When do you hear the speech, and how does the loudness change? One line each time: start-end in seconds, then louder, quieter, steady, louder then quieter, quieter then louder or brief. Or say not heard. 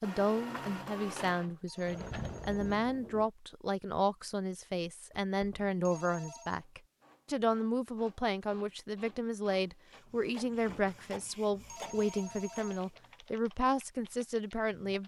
0.0-15.0 steady.